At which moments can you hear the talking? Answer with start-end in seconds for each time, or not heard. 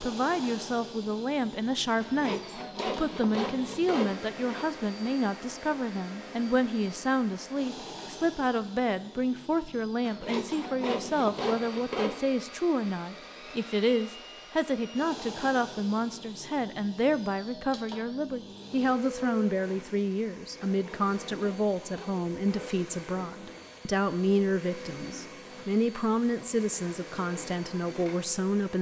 0.0-28.7.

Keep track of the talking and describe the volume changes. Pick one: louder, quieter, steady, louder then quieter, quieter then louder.
steady.